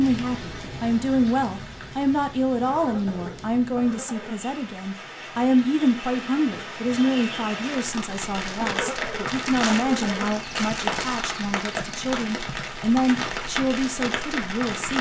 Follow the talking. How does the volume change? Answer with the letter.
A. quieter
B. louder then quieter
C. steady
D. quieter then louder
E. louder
C.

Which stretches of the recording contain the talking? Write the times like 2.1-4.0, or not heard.
0.0-14.9.